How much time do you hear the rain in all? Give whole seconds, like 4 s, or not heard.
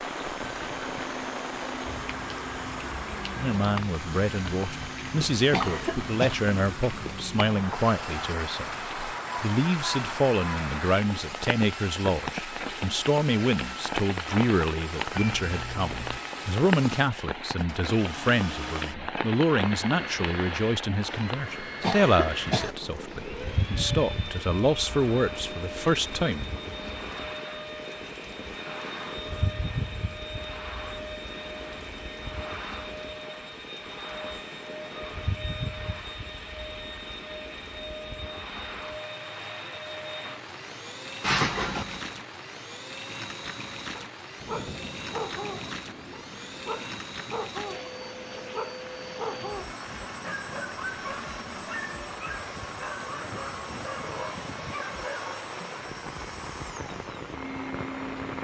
58 s.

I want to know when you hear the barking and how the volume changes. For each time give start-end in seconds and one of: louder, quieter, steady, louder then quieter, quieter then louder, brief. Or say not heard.
44.0-55.4 steady.